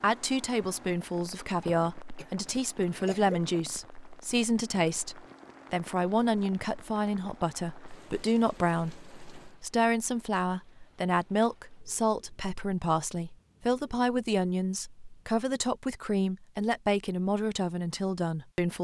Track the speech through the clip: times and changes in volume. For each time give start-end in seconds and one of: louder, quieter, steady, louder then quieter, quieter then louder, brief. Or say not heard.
0.0-18.7 steady.